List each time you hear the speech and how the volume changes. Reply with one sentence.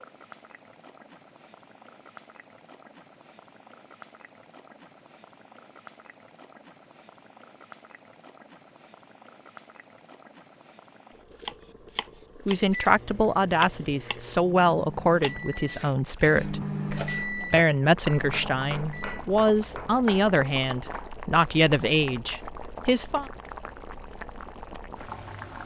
The speech can be heard from 12.4 to 23.2 s, at a steady volume.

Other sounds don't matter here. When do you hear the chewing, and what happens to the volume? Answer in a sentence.
The chewing can't be heard in this clip.